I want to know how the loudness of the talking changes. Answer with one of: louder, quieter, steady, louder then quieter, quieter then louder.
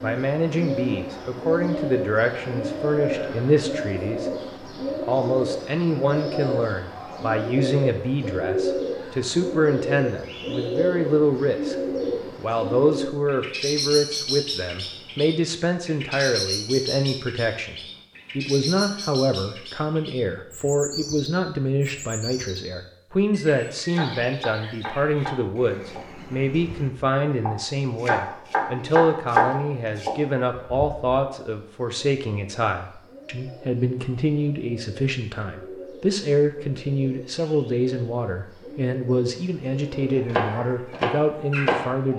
steady.